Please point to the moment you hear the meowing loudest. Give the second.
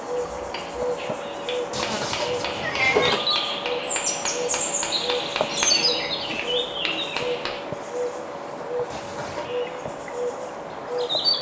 3 s.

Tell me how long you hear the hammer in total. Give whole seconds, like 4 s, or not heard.
7 s.